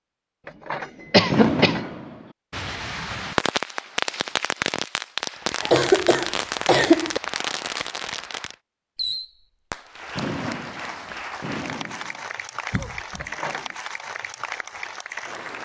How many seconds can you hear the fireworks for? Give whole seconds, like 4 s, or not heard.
11 s.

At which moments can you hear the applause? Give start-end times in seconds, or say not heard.
5.2-8.6, 9.8-15.6.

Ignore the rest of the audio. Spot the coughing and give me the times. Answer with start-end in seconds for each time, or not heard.
1.1-1.8, 5.6-7.2, 12.7-13.3.